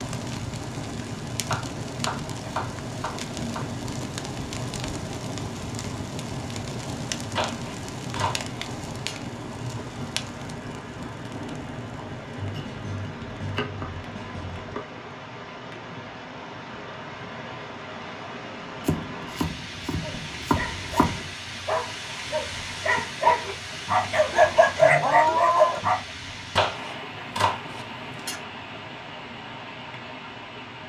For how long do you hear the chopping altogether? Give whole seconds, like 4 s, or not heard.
11 s.